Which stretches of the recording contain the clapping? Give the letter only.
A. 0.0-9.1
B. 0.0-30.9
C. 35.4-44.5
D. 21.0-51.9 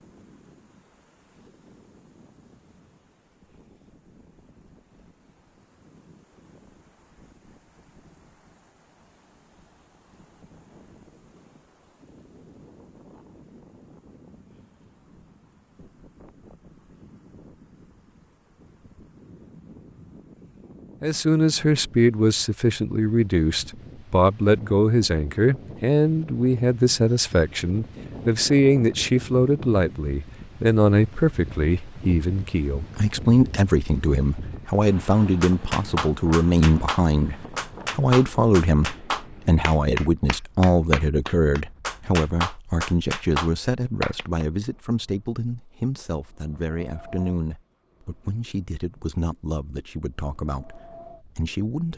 C.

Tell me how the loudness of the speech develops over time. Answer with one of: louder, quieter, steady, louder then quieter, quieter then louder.
quieter.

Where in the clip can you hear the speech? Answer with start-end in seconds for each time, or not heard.
21.0-51.9.